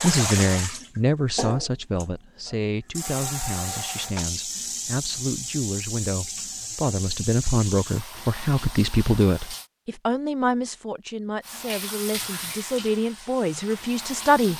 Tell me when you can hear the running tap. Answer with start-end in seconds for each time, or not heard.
0.0-9.7, 11.4-14.5.